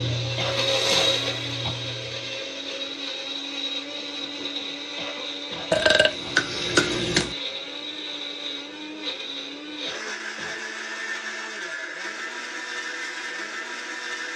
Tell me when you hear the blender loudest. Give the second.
1 s.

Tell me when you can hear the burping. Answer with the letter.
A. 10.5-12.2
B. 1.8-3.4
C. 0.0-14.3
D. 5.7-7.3
D.